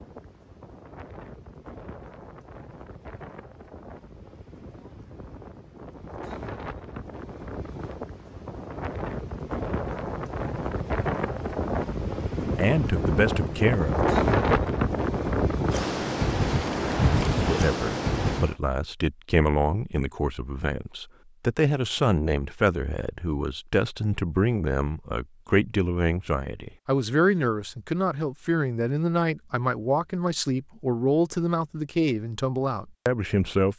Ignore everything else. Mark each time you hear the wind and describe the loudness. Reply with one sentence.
The wind can be heard from 0.0 to 18.6 s, getting louder.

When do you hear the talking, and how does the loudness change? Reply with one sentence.
You can hear the talking briefly from 12.6 to 14.8 s; and from 17.4 to 33.7 s, at a steady volume.